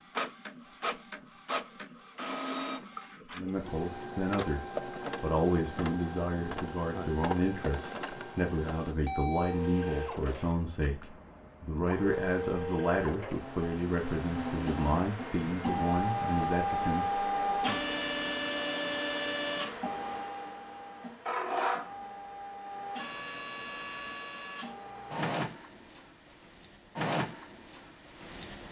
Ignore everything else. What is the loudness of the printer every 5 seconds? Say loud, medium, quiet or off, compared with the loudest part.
medium, medium, medium, loud, medium, medium.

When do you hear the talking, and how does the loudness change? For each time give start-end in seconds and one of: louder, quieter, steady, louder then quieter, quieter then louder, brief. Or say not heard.
3.4-17.8 steady.